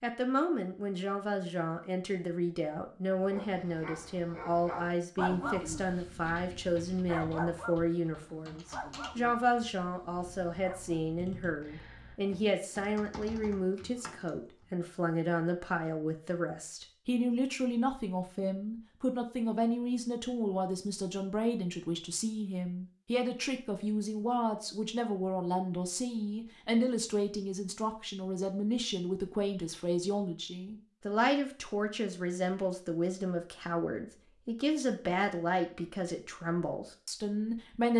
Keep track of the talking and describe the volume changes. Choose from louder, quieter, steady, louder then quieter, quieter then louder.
steady.